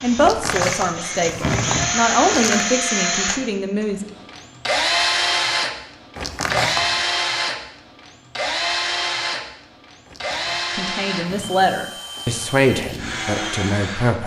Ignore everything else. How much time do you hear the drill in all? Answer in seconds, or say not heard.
14 s.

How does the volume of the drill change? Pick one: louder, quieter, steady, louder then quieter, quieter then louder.
quieter.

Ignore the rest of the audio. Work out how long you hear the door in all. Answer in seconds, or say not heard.
6 s.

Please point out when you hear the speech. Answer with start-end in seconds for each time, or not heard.
0.0-4.0, 10.8-14.2.